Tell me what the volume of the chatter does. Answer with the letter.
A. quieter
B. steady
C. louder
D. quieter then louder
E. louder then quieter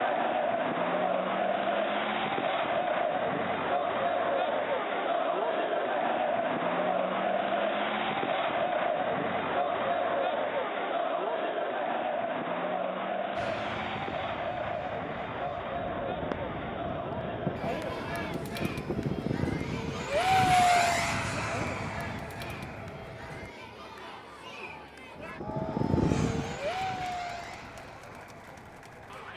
A.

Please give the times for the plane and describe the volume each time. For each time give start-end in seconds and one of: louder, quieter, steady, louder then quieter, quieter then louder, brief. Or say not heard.
13.3-23.5 louder then quieter
25.1-29.3 quieter.